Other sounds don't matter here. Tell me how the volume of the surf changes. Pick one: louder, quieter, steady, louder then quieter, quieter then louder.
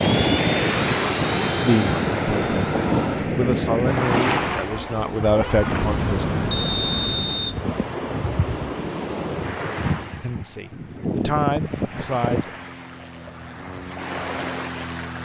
quieter.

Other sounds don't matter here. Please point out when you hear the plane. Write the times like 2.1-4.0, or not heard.
0.0-3.4, 10.8-15.2.